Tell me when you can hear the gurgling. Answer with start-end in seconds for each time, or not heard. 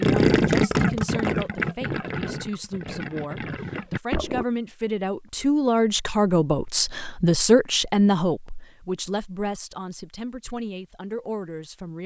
0.0-4.5.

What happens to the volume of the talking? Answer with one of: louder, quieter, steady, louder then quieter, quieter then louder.
louder then quieter.